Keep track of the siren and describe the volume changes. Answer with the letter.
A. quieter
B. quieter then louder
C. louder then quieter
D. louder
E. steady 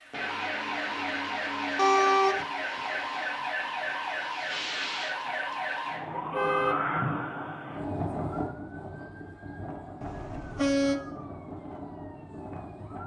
A.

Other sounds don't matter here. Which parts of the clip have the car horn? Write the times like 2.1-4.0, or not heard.
1.8-2.5, 6.2-6.8, 10.0-10.9.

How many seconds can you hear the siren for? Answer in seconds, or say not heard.
13 s.